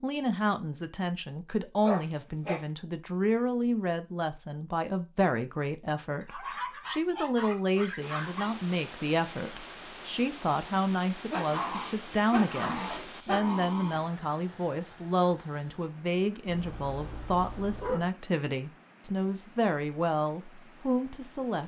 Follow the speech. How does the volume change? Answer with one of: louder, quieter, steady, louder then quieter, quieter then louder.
steady.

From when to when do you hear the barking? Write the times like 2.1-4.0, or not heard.
1.8-2.6, 6.2-8.5, 11.3-14.1, 16.4-18.1.